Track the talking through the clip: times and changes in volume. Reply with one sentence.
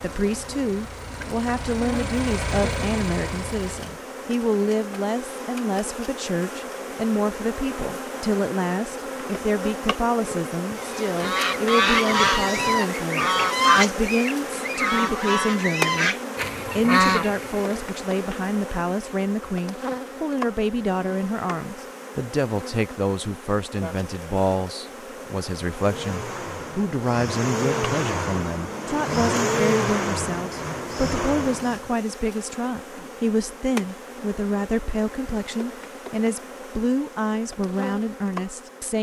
You can hear the talking from 0.0 to 38.9 s, at a steady volume.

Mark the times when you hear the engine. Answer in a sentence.
The engine can be heard from 0.0 to 4.0 s and from 25.7 to 31.9 s.